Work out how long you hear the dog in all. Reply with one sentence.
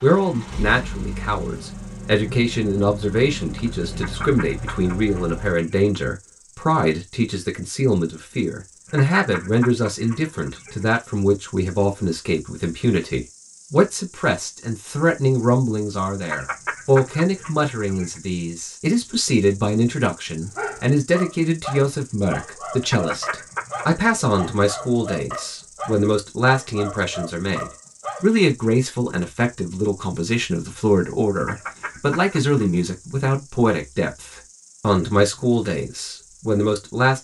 You can hear the dog for 8 seconds altogether.